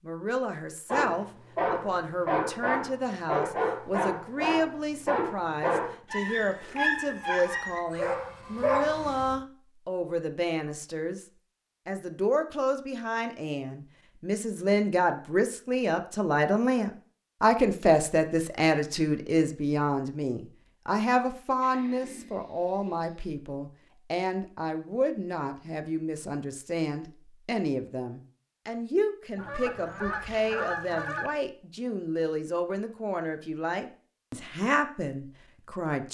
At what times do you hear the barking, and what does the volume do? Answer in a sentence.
You can hear the barking from 0.8 to 9.3 s, at a steady volume.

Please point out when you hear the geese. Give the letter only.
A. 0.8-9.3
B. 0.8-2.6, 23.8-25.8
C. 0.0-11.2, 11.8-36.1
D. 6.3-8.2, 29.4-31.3
D.